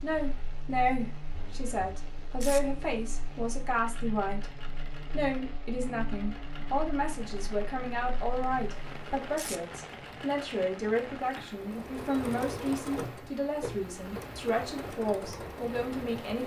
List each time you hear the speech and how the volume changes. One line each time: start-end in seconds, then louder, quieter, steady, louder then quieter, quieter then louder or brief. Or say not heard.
0.0-16.4 steady.